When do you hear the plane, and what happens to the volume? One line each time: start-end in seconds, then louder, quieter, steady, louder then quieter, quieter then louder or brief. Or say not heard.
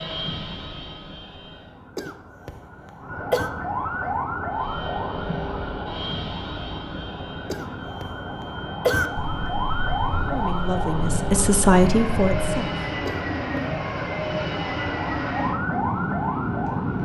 0.0-1.9 brief
4.5-16.9 quieter then louder.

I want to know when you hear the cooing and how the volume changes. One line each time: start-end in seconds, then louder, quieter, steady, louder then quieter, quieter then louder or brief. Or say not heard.
not heard.